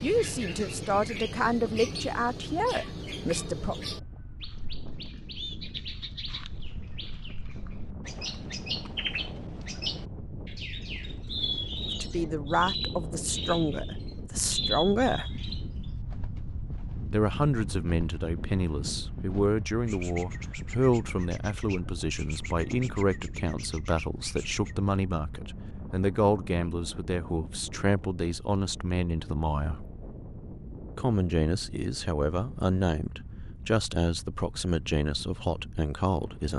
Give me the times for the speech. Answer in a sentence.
You can hear the speech from 0.0 to 3.8 s, from 12.0 to 15.3 s, from 17.1 to 29.9 s and from 30.9 to 36.5 s.